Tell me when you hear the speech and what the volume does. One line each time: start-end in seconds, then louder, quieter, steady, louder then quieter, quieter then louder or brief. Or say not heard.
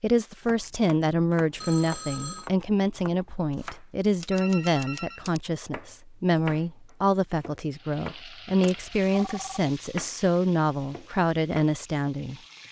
0.0-12.3 steady.